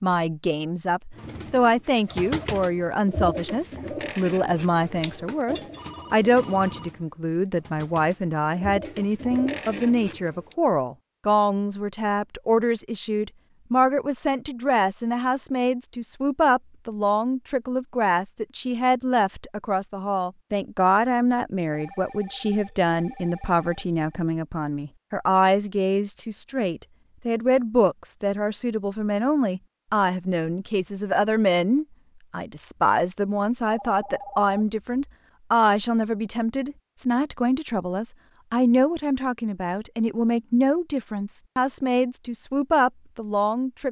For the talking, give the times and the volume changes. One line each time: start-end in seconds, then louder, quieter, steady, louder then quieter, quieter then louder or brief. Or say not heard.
0.0-43.8 steady.